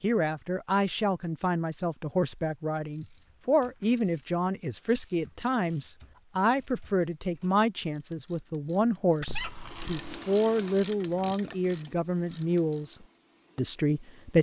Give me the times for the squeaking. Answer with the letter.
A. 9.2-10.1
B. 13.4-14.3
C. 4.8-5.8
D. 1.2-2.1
A.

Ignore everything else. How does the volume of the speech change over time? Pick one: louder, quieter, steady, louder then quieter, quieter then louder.
steady.